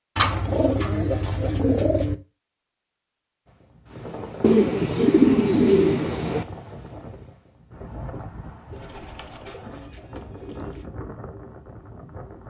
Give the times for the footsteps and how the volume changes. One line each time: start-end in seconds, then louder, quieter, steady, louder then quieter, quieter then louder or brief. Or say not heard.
not heard.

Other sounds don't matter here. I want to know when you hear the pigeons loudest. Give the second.
5 s.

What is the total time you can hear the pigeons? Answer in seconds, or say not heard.
6 s.